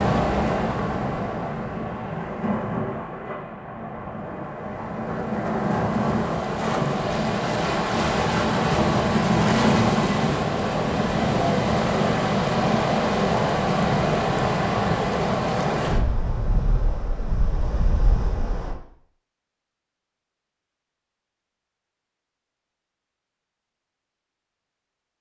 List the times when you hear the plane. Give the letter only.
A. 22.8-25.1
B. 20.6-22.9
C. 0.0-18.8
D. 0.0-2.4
D.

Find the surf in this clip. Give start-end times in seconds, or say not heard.
0.0-18.8.